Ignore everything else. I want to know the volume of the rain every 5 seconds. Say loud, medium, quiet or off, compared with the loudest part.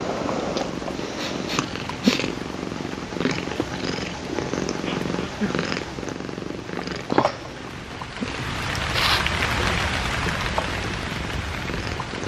medium, loud, loud.